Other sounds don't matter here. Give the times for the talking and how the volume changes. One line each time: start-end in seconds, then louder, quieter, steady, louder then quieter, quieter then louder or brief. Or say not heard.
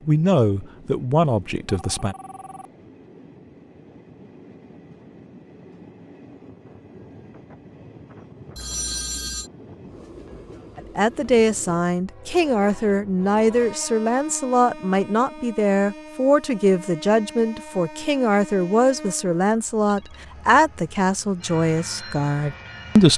0.1-2.1 brief
10.8-23.1 steady.